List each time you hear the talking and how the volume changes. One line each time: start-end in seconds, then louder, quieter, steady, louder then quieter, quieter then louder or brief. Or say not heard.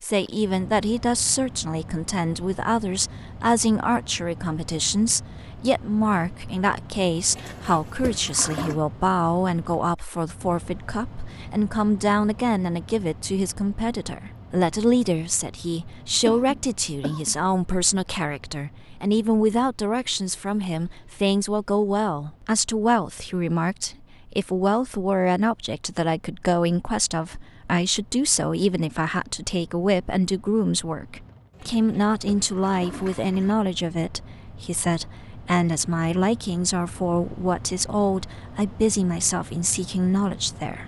0.0-40.8 steady.